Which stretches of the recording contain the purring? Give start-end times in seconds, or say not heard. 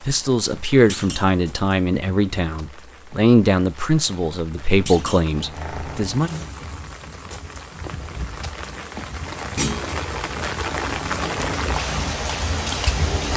5.2-13.3.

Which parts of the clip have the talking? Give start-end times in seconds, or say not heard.
0.1-6.3.